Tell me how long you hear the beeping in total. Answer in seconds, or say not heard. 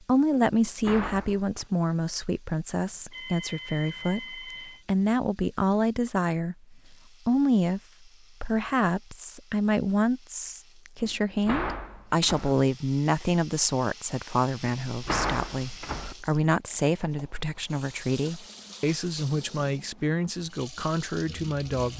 2 s.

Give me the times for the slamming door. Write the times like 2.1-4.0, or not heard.
0.6-1.6, 11.0-12.6, 14.8-16.1.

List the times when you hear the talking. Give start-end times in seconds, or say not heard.
0.1-7.8, 8.4-21.9.